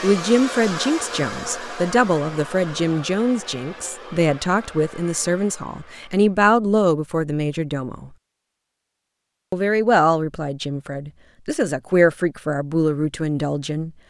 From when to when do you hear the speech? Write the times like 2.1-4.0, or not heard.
0.0-8.1, 9.5-13.9.